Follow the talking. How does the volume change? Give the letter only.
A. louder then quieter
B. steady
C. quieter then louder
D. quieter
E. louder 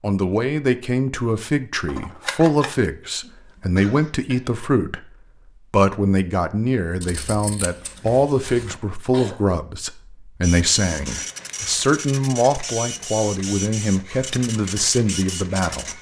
B.